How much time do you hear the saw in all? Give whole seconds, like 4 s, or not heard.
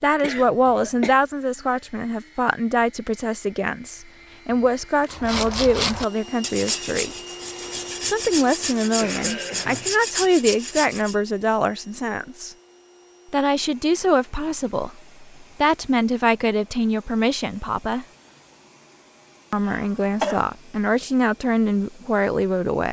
6 s.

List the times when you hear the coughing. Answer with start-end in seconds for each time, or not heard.
0.2-1.1, 8.8-9.9, 19.6-20.4.